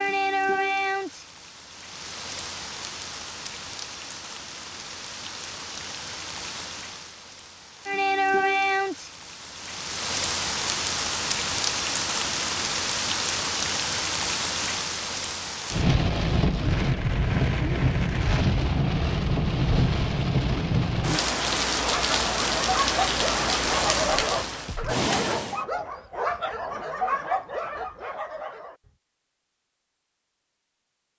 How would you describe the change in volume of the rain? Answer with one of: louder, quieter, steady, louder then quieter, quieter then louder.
louder.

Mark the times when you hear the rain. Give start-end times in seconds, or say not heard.
0.0-25.6.